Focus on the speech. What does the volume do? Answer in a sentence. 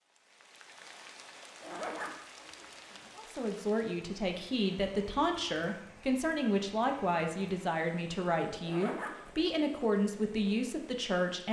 The loudness of the speech stays about the same.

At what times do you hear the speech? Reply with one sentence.
The speech can be heard from 3.1 to 11.4 s.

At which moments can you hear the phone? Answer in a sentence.
The phone can't be heard in this clip.